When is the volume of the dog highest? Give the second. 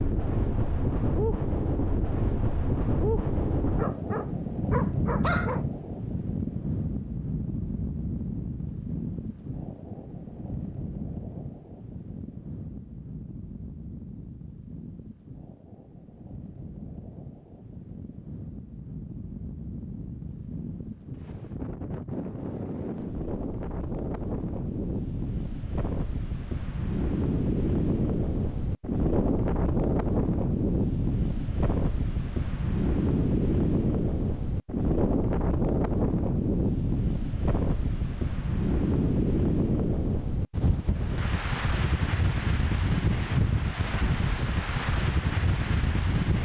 5 s.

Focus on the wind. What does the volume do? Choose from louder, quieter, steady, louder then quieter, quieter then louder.
quieter then louder.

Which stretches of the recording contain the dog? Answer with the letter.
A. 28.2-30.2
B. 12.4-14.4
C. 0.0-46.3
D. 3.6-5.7
D.